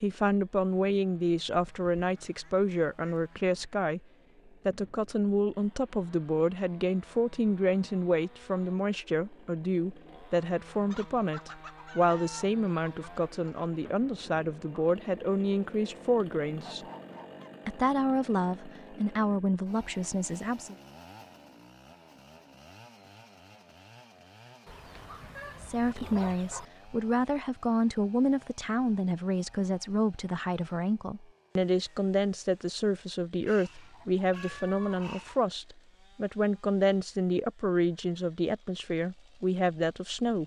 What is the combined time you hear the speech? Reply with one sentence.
You can hear the speech for 34 seconds altogether.